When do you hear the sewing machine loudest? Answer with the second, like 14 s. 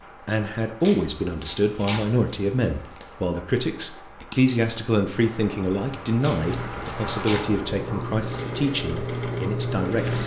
10 s.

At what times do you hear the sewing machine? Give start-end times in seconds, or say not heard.
6.3-10.2.